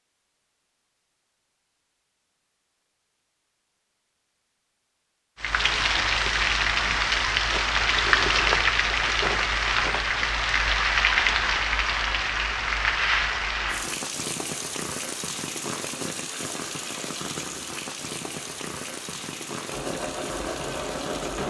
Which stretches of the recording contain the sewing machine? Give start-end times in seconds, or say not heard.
19.7-21.4.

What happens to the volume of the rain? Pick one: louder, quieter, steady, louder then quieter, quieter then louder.
quieter.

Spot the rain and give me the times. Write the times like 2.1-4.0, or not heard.
5.4-21.4.